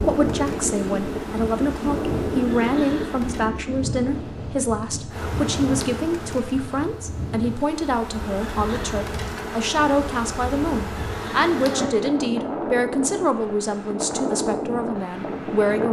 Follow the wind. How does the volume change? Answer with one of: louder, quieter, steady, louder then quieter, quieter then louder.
quieter then louder.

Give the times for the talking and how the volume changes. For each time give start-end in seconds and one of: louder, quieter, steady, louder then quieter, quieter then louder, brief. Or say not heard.
0.0-15.8 steady.